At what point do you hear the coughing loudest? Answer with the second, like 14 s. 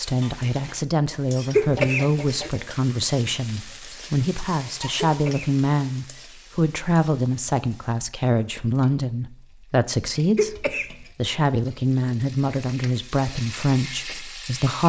2 s.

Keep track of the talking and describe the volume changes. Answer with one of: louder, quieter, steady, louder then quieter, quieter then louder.
steady.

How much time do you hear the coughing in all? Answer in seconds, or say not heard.
2 s.